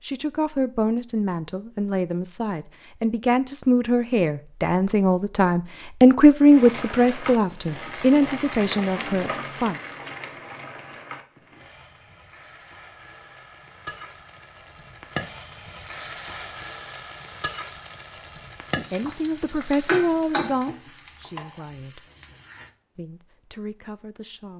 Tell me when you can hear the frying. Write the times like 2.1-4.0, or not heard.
6.5-22.7.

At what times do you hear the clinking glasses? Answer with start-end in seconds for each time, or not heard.
not heard.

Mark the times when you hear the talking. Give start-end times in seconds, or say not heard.
0.0-9.8, 18.7-22.1, 22.9-24.5.